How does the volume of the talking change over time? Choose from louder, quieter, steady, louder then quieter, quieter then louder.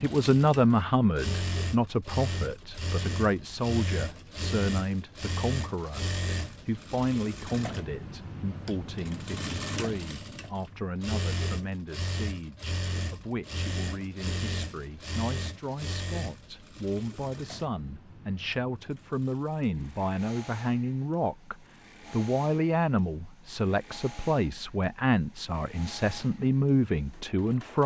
quieter then louder.